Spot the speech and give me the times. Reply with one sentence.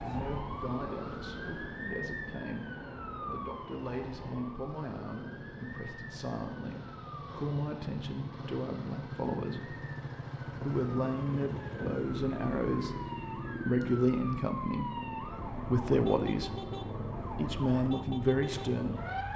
You can hear the speech from 0.0 to 9.8 s, from 10.4 to 13.0 s, from 13.7 to 16.5 s and from 17.4 to 19.1 s.